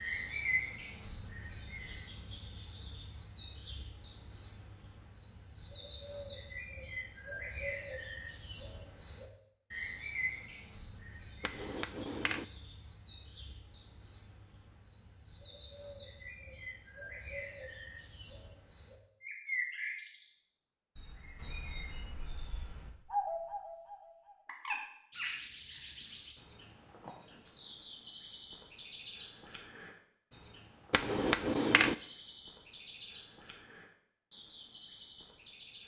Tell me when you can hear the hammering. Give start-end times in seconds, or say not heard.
11.4-12.4, 30.9-31.9.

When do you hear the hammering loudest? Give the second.
31 s.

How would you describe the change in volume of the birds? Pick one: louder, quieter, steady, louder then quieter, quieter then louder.
quieter.